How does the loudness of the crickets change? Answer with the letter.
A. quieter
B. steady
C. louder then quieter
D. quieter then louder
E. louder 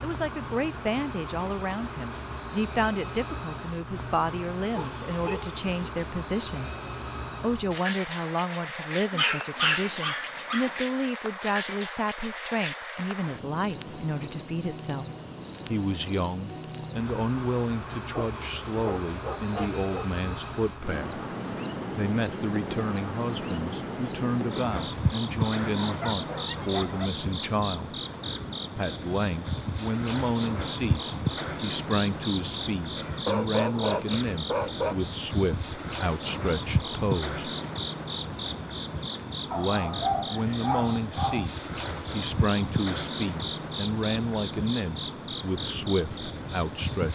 B.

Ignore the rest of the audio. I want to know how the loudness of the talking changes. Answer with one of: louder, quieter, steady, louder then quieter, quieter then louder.
steady.